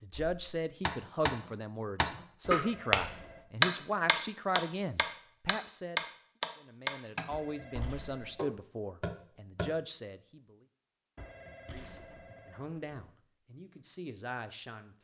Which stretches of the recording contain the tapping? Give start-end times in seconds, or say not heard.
0.1-9.7.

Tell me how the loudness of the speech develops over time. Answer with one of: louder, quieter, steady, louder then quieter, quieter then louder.
quieter.